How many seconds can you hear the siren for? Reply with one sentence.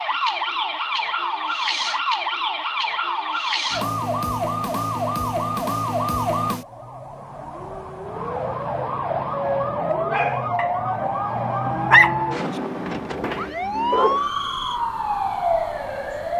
You can hear the siren for 16 seconds altogether.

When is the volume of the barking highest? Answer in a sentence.
The loudest moment of the barking is at 12 seconds.